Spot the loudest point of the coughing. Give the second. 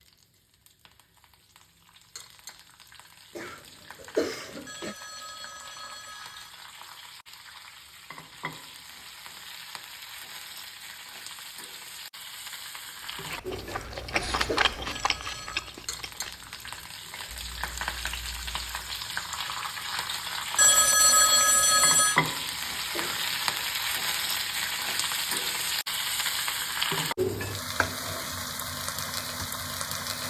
4 s.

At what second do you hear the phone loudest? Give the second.
21 s.